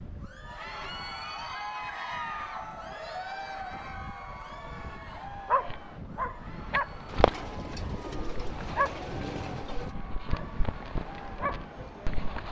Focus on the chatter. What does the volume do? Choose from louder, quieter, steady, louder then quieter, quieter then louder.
quieter.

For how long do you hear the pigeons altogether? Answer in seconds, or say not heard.
3 s.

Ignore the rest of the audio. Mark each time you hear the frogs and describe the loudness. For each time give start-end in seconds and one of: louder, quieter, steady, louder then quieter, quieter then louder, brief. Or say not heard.
not heard.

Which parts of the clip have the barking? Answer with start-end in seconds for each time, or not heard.
4.9-12.4.